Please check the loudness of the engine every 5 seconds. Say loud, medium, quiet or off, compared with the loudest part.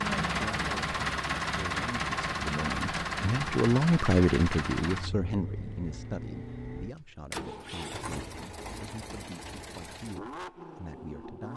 loud, medium, medium.